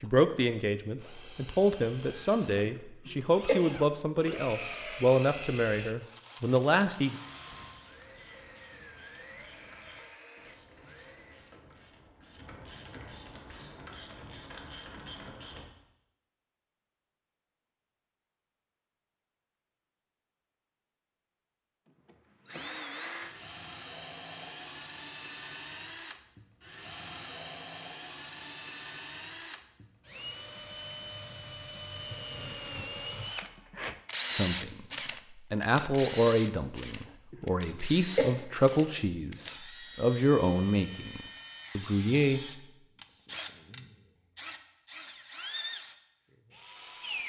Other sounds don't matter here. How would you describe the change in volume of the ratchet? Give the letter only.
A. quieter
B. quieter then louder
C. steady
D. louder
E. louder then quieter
D.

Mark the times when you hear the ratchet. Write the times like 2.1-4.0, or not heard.
7.2-15.7.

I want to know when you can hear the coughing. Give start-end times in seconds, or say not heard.
2.6-3.5, 37.3-38.2.